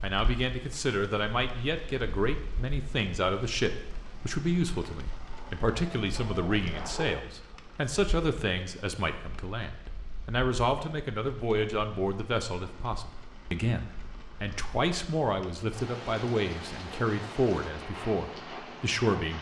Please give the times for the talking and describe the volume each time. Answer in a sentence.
You can hear the talking from 0.0 to 19.3 s, at a steady volume.